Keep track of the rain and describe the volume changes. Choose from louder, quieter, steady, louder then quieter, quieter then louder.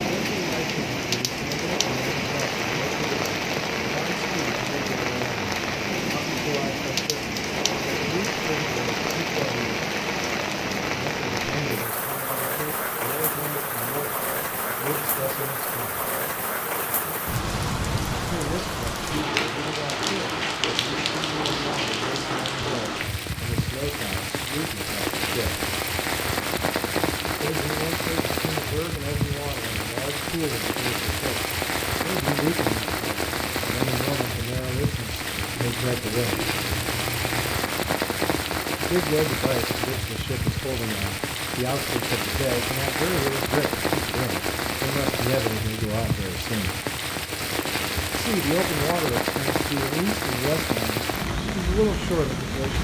steady.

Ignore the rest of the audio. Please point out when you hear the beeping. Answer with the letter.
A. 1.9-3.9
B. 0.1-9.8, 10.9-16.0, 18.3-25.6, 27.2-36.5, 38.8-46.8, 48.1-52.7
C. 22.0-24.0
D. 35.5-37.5
D.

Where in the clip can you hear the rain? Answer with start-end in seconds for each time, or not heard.
0.0-52.7.